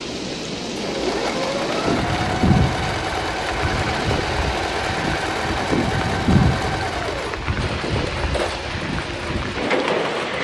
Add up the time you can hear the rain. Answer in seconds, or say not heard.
10 s.